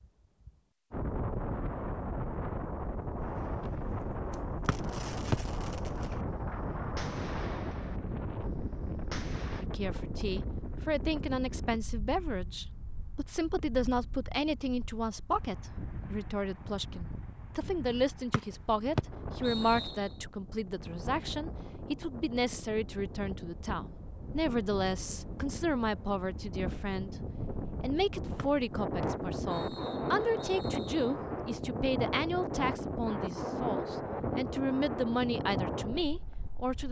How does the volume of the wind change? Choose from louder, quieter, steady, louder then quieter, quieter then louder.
quieter then louder.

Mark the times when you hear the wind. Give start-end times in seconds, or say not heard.
0.0-36.8.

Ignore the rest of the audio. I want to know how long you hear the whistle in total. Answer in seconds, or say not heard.
5 s.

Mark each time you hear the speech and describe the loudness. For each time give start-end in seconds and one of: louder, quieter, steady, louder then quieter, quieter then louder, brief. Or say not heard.
9.6-36.8 steady.